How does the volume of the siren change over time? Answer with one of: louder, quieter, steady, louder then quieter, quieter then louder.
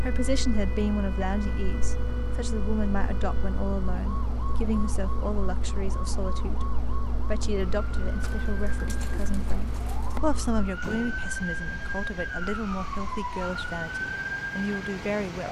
louder.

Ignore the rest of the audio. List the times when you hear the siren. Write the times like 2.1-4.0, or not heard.
0.0-15.4.